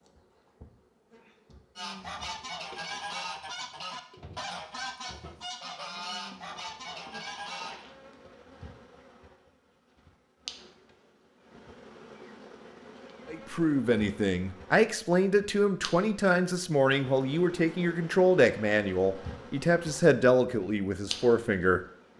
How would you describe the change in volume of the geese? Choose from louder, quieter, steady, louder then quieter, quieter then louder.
steady.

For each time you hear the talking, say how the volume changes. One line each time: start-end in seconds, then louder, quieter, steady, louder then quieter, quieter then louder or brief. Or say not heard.
13.3-22.1 steady.